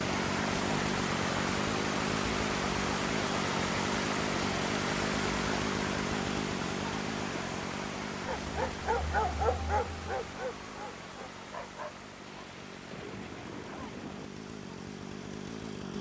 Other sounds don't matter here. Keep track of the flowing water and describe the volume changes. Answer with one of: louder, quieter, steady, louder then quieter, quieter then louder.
quieter.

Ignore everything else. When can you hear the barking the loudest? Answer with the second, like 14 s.
9 s.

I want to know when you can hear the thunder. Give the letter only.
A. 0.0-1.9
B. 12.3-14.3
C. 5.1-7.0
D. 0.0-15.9
B.